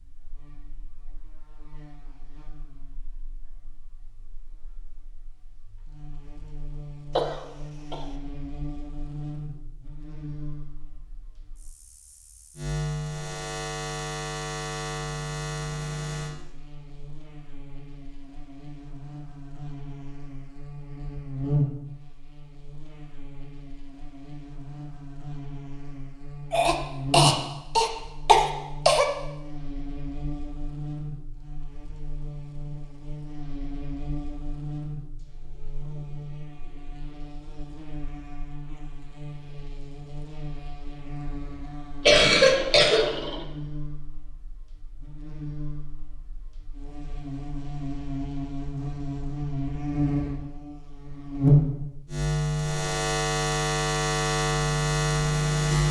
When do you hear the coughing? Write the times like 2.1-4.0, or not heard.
7.2-8.1, 26.5-29.1, 42.0-43.5.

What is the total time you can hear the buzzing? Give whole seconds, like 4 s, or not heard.
56 s.